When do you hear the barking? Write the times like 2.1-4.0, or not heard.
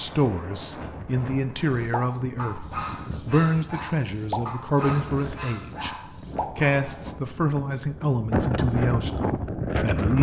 1.6-7.1.